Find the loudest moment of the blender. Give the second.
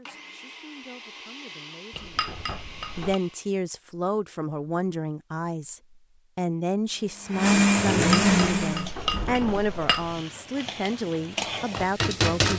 8 s.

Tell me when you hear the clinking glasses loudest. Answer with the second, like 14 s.
9 s.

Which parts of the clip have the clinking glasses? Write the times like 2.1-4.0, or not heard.
1.9-3.2, 8.0-10.2.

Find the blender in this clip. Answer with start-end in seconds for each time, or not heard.
0.0-3.5, 6.8-8.9.